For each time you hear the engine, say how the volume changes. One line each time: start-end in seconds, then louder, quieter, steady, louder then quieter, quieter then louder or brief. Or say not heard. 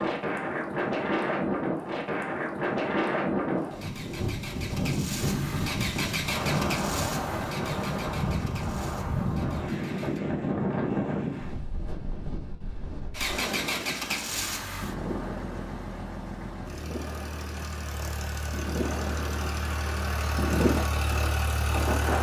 3.5-10.2 louder then quieter
13.1-22.1 quieter then louder.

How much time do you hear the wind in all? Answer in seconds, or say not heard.
22 s.